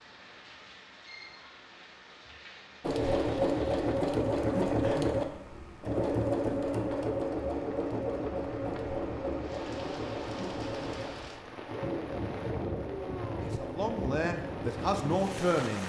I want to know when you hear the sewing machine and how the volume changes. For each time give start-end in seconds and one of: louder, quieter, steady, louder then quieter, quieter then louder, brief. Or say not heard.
2.8-15.6 quieter.